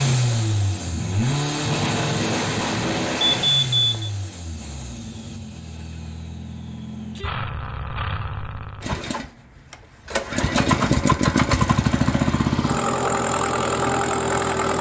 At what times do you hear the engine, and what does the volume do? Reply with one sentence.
The engine can be heard from 0.0 to 14.7 s, getting quieter then louder.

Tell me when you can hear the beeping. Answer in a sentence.
You can hear the beeping from 3.2 to 4.1 s.